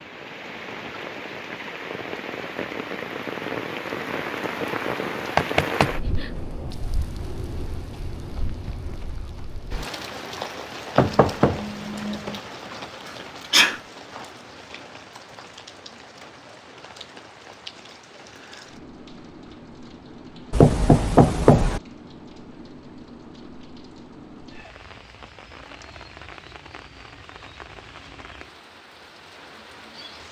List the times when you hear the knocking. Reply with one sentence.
You can hear the knocking from 5.3 to 6.2 s, from 10.9 to 12.4 s and from 20.5 to 21.8 s.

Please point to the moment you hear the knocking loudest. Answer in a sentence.
The loudest moment of the knocking is at 21 seconds.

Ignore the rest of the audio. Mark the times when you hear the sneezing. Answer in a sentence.
The sneezing can be heard from 13.1 to 13.8 s.